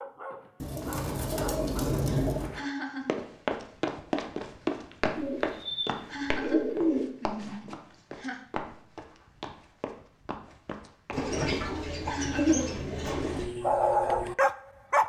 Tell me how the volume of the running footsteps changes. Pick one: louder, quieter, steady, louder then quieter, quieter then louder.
quieter.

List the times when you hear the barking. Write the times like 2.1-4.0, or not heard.
0.0-2.7, 13.2-15.0.